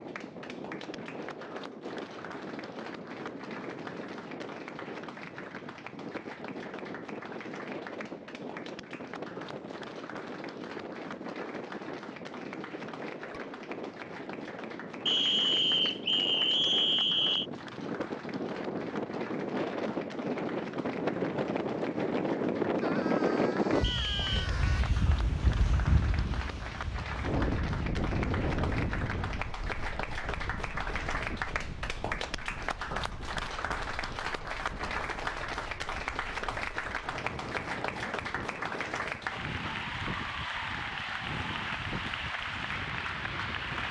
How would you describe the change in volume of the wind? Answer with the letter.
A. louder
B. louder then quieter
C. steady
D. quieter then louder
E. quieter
B.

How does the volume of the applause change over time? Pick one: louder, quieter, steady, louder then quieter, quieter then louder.
louder.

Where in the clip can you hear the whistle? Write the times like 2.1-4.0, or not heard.
15.1-17.4, 23.8-24.5.